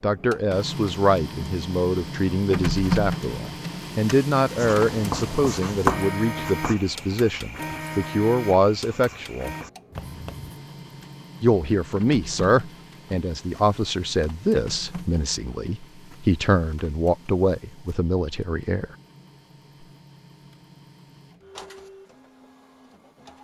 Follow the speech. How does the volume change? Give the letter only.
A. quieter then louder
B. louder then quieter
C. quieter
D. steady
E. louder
D.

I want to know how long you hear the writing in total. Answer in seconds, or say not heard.
6 s.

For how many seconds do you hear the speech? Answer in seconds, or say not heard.
17 s.